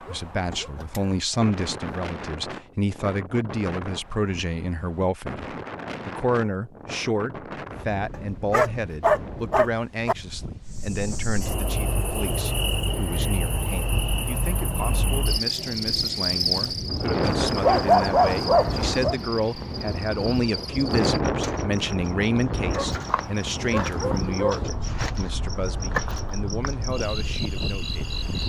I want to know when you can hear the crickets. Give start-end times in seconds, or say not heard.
10.7-28.4.